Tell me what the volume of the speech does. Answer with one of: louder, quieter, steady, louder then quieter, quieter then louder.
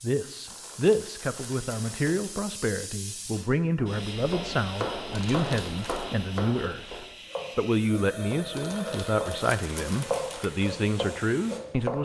steady.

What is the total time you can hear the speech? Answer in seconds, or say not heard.
12 s.